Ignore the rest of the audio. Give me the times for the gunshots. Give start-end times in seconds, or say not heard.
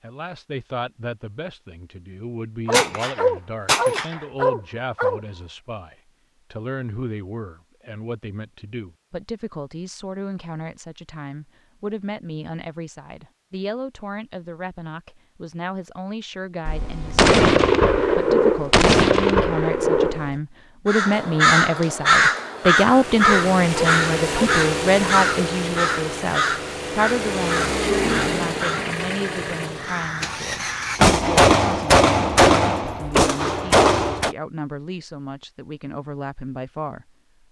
2.7-4.2, 16.6-20.4, 30.9-34.4.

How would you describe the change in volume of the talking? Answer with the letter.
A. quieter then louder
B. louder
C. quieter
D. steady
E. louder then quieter
E.